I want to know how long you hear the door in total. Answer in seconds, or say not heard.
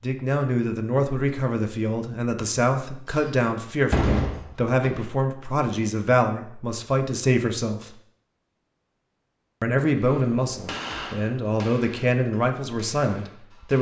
2 s.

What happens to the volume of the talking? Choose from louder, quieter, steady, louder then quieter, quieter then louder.
steady.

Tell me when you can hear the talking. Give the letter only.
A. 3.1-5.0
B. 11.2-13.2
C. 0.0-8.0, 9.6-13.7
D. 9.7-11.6
C.